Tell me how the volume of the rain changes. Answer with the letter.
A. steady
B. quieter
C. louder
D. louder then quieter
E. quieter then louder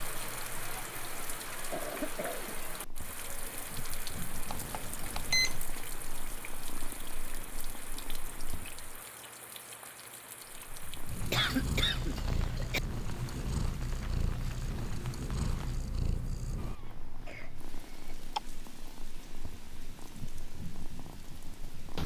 B.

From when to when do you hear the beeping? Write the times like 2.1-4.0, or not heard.
4.5-5.6.